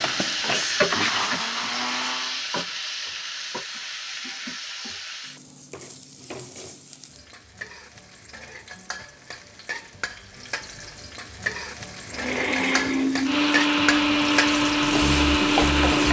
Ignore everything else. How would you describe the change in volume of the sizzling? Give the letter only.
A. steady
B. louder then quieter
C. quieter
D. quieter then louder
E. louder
D.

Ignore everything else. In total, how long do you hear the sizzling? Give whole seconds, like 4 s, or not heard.
16 s.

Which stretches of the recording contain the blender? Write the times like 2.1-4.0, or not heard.
0.0-2.4, 12.1-16.0.